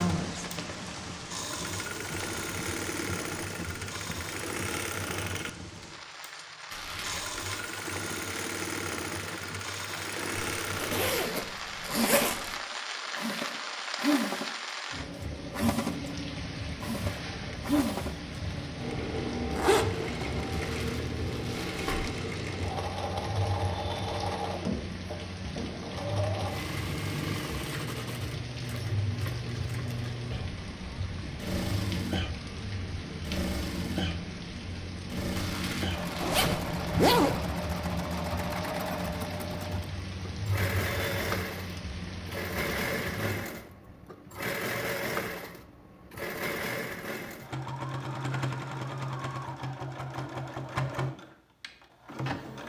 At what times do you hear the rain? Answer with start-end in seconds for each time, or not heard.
0.0-43.4.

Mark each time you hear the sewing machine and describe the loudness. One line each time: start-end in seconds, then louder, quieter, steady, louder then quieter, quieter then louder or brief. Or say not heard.
0.0-52.6 steady.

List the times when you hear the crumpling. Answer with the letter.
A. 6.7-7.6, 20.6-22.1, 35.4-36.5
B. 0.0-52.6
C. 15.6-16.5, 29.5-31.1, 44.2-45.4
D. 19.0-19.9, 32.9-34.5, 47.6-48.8
A.